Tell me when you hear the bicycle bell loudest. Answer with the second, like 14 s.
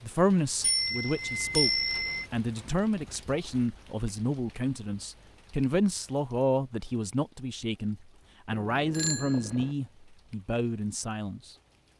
2 s.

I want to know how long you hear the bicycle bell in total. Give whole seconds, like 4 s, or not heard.
3 s.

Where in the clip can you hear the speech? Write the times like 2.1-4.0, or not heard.
0.0-1.7, 2.3-11.5.